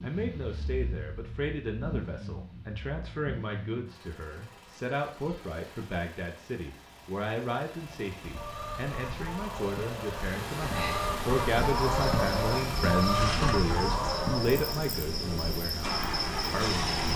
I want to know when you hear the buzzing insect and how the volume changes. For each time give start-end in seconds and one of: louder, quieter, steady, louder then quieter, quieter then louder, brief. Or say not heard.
10.2-17.1 steady.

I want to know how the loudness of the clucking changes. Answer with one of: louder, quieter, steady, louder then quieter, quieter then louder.
louder.